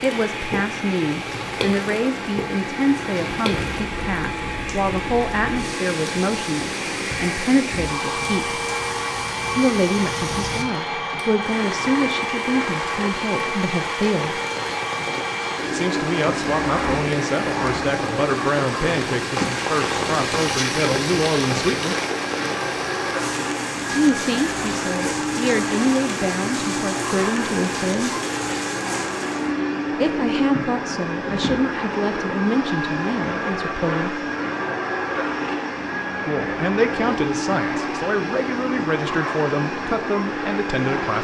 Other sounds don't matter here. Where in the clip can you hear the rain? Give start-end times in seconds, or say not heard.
0.0-29.5.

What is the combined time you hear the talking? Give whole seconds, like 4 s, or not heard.
33 s.